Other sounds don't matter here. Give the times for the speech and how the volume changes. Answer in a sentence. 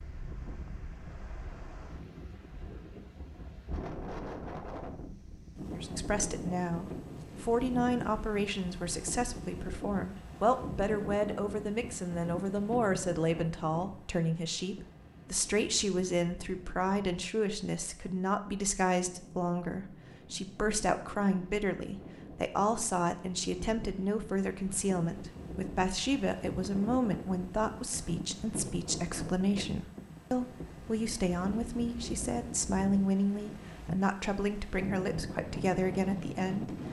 You can hear the speech from 5.8 to 36.8 s, at a steady volume.